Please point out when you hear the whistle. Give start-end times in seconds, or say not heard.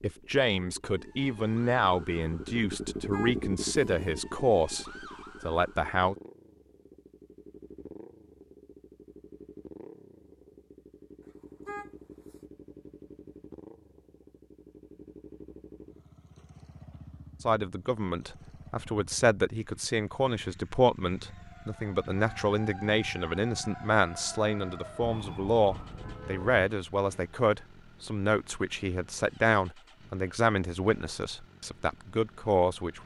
not heard.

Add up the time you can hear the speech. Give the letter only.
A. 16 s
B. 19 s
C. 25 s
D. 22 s
D.